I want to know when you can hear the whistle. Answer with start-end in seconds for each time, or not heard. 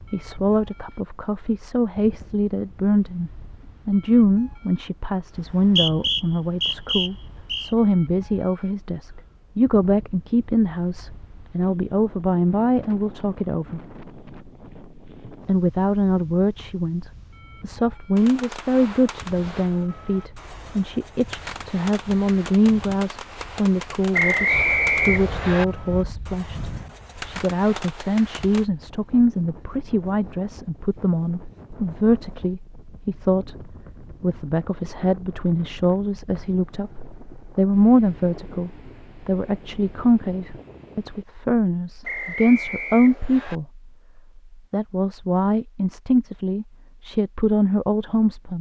5.3-7.7, 24.1-25.6, 42.0-43.6.